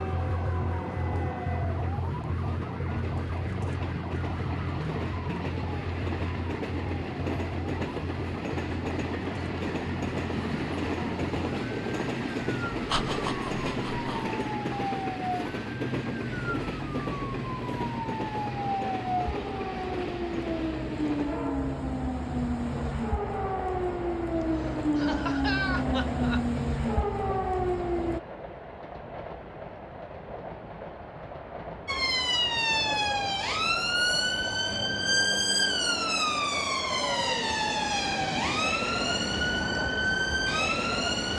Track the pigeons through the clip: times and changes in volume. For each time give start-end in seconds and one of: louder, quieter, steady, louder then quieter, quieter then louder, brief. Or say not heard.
not heard.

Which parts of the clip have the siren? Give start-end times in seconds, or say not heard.
0.0-28.2, 31.9-41.3.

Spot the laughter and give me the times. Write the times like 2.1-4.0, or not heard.
12.9-14.3, 24.6-26.4.